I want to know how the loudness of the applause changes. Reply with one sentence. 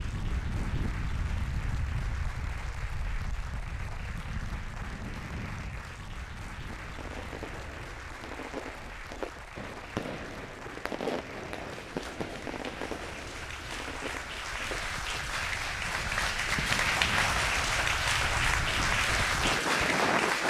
The loudness of the applause goes up.